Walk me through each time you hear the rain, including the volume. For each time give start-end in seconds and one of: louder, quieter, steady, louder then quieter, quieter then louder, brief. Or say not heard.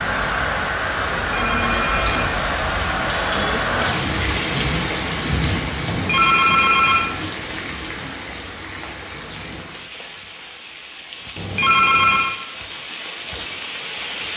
0.0-14.3 quieter.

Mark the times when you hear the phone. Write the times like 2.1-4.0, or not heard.
1.3-2.3, 5.9-7.1, 11.3-12.3.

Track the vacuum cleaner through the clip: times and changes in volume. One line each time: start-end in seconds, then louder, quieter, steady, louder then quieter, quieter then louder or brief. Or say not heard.
not heard.